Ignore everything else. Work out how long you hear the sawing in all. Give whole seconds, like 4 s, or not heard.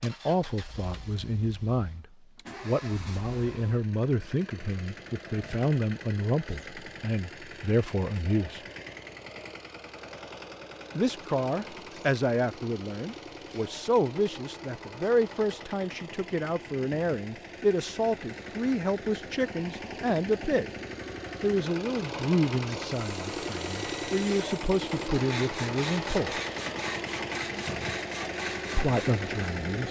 6 s.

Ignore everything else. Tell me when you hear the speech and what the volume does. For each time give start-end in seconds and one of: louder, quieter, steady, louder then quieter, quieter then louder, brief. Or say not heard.
0.0-8.6 steady
10.9-20.7 steady
21.4-26.4 quieter then louder
28.8-29.8 brief.